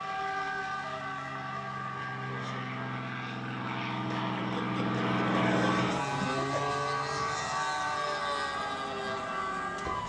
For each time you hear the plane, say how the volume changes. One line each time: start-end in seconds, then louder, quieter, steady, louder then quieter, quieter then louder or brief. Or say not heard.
0.0-10.0 louder then quieter.